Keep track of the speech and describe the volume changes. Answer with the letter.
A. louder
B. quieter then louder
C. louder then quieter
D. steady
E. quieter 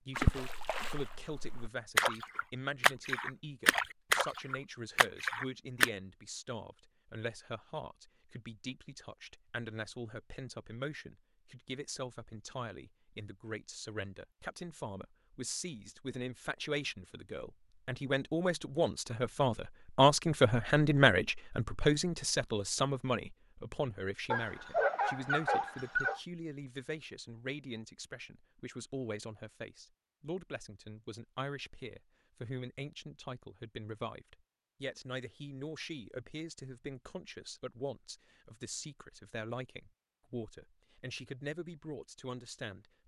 C.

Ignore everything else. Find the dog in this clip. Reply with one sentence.
You can hear the dog from 24.3 to 26.2 s.